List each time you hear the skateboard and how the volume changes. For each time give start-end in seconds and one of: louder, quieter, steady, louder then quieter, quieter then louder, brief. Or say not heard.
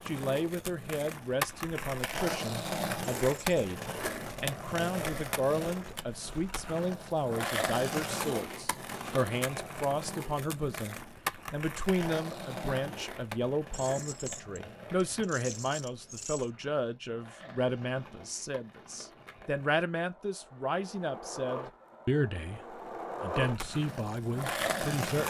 0.0-25.2 quieter then louder.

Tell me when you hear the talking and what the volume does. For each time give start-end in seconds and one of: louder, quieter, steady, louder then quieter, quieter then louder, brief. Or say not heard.
0.1-25.2 steady.